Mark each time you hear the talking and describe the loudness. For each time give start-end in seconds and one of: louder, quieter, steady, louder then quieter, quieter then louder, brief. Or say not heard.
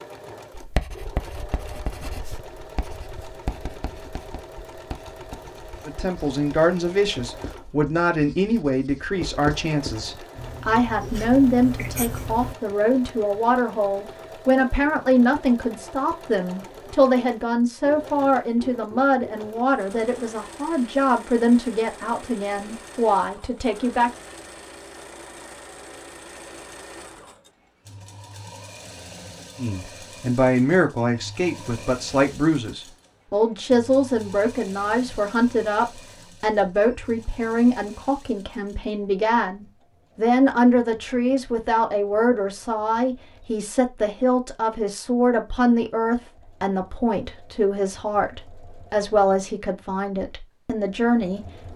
5.8-24.1 steady
29.6-51.7 steady.